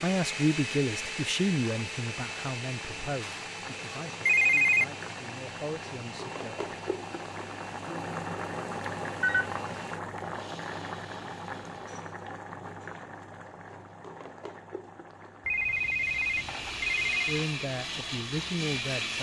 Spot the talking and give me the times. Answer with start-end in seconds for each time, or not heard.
0.0-6.7, 17.2-19.1.